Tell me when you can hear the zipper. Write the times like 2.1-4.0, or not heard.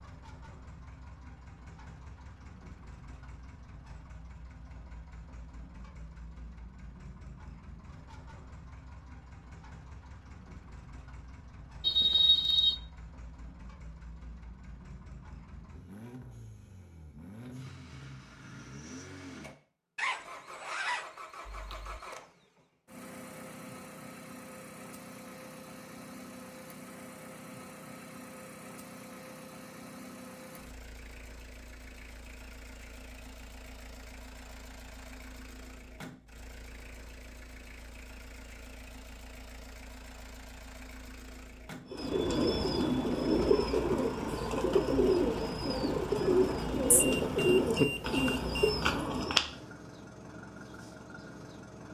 19.9-22.0.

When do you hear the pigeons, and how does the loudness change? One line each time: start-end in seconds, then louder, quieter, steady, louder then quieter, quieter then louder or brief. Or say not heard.
41.9-49.4 steady.